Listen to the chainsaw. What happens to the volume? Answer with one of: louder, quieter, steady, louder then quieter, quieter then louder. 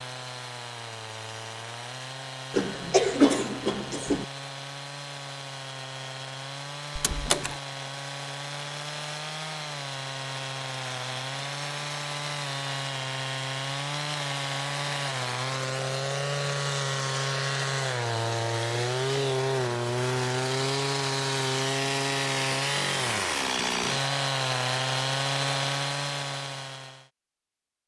louder.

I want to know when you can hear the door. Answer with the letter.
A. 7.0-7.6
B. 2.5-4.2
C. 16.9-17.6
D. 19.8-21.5
A.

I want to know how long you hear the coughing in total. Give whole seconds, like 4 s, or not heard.
2 s.